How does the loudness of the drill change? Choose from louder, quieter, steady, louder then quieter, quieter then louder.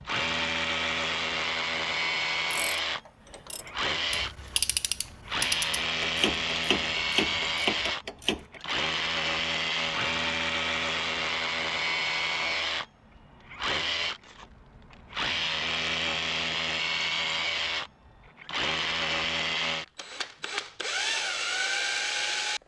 steady.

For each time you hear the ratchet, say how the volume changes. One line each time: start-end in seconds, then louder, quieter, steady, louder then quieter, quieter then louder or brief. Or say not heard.
2.5-8.7 louder.